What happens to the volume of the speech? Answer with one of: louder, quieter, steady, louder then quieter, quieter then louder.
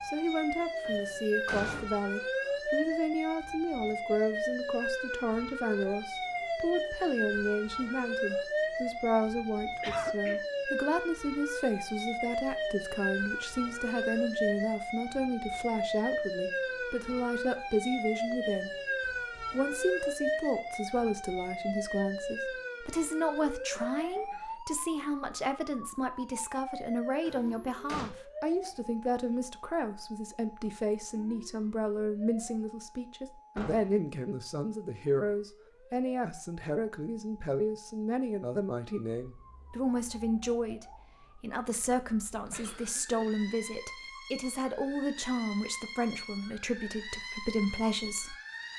steady.